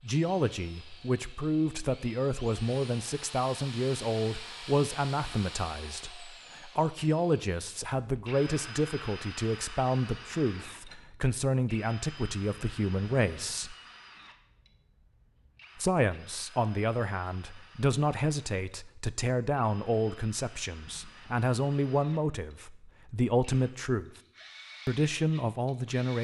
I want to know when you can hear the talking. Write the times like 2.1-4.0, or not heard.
0.0-13.8, 15.8-24.1, 24.9-26.1.